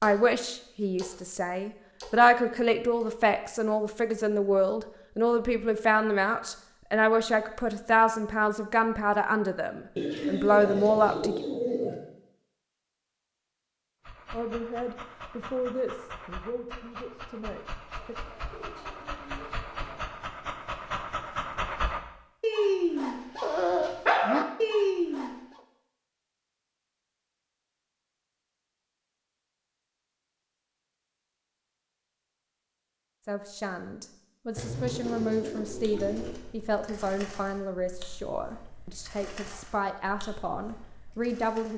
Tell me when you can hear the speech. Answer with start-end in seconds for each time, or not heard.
0.0-11.4, 14.3-18.1, 33.2-41.7.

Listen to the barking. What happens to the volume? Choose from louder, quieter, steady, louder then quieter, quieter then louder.
louder.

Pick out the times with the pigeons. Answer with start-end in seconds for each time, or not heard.
9.9-11.9, 17.9-20.1, 34.5-36.4.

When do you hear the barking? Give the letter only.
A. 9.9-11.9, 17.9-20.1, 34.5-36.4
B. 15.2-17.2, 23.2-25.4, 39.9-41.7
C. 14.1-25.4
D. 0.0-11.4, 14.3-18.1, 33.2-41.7
C.